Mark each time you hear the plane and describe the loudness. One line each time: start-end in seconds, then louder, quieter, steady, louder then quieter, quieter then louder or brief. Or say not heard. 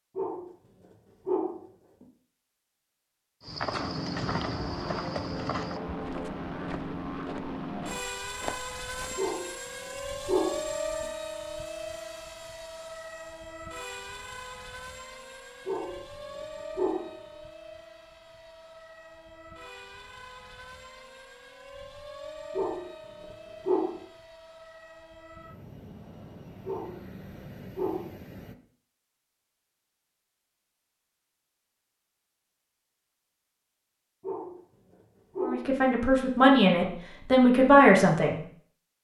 3.8-28.6 quieter.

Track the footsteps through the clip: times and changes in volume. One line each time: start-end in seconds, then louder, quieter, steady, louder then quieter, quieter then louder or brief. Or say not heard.
3.4-9.2 quieter then louder.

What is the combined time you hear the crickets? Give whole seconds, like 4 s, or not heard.
not heard.